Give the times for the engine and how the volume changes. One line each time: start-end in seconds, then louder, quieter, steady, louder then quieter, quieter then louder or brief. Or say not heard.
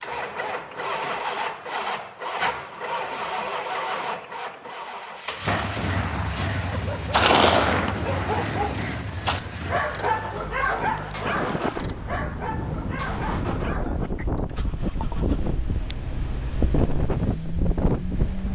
0.0-18.5 quieter.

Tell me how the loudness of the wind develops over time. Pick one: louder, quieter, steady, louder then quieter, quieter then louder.
louder.